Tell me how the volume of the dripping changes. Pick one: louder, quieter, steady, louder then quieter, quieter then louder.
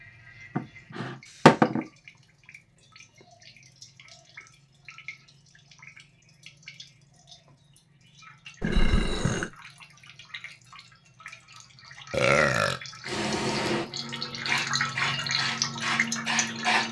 louder.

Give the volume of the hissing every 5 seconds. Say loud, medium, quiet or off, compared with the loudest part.
off, off, loud, loud.